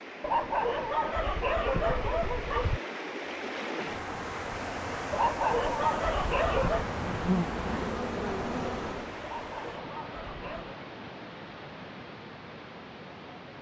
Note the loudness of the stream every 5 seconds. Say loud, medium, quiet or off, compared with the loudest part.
loud, loud, medium.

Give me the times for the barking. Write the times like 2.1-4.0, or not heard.
0.2-2.8, 5.1-6.8, 9.2-10.8.